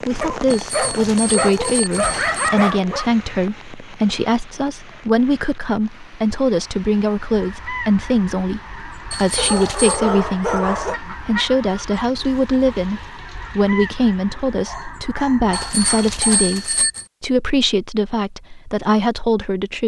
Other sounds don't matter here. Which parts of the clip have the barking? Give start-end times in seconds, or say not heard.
0.2-3.1, 9.3-11.0, 14.7-16.6.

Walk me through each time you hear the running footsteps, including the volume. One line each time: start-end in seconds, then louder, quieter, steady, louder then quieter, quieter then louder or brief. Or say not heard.
not heard.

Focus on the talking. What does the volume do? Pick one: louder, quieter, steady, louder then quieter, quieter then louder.
steady.